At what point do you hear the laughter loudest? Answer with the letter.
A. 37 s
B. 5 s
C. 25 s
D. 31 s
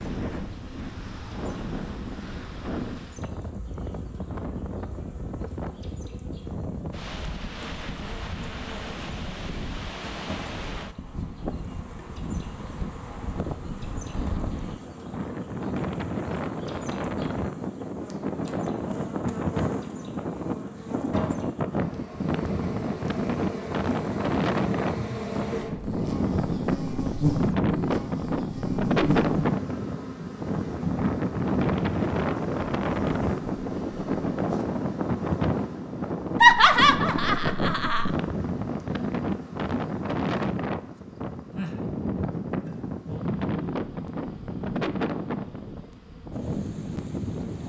A.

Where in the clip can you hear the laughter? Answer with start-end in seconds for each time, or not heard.
36.4-38.1.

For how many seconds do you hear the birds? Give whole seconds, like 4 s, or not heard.
not heard.